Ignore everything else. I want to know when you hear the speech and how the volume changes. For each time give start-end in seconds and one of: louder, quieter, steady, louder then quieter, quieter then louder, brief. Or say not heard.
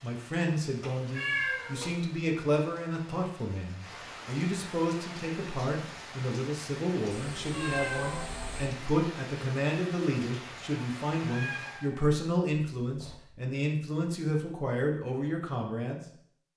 0.0-16.0 steady.